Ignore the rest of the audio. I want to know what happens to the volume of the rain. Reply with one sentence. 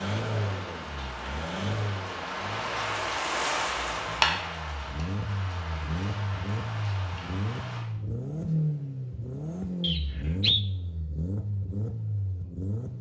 The volume of the rain goes up, then down.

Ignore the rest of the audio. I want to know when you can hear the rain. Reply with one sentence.
The rain can be heard from 0.0 to 7.8 s.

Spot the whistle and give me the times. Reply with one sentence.
The whistle can be heard from 9.8 to 10.7 s.